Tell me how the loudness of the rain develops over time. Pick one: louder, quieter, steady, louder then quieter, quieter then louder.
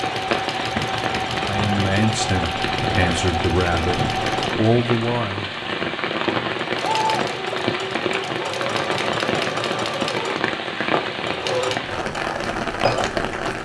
steady.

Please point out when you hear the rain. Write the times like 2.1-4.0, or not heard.
0.0-13.5.